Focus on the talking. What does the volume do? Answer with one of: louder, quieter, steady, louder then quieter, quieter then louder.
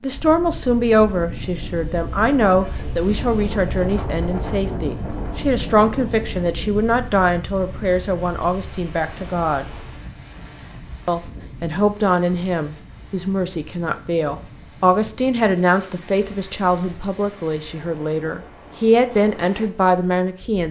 steady.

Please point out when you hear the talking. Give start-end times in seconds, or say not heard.
0.0-9.7, 11.1-20.6.